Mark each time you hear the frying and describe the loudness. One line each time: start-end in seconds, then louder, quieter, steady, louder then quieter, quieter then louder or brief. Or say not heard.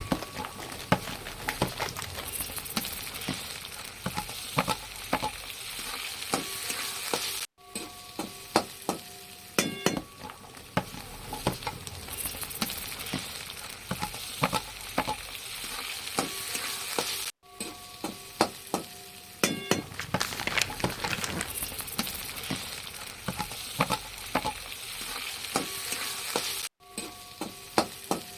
0.0-28.3 steady.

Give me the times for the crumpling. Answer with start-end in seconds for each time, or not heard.
0.0-2.3, 19.7-21.5.